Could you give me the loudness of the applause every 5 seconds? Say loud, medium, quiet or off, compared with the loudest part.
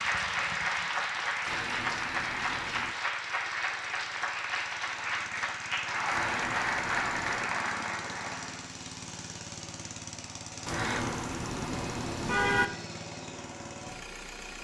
loud, loud, off.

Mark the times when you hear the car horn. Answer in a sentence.
You can hear the car horn from 1.4 to 3.0 s, from 6.1 to 7.5 s and from 10.7 to 12.7 s.